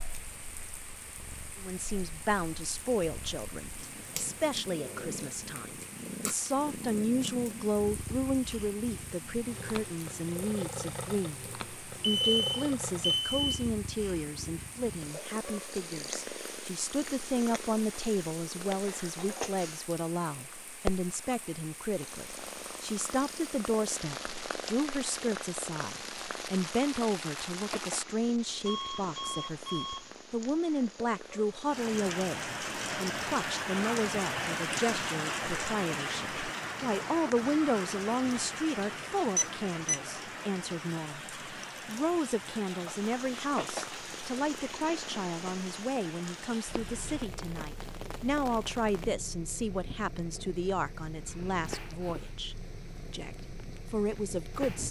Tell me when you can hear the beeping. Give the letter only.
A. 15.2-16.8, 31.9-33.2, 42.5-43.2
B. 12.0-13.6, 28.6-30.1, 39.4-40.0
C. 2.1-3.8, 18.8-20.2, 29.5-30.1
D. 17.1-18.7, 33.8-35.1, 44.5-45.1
B.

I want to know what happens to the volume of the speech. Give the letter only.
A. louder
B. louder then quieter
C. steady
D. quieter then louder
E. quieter
C.